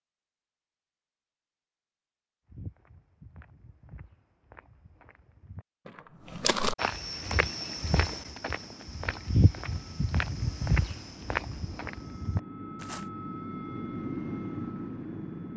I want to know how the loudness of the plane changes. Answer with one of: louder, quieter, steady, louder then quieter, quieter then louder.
louder.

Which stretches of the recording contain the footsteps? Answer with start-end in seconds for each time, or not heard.
2.5-13.1.